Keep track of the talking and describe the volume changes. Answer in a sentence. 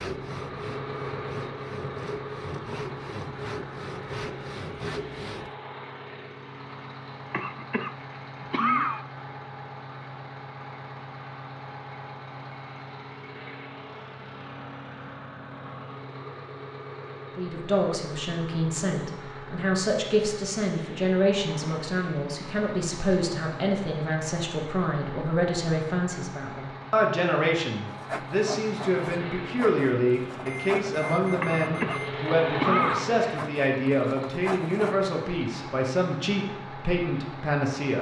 The volume of the talking stays about the same.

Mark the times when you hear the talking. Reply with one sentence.
You can hear the talking from 17.4 to 37.9 s.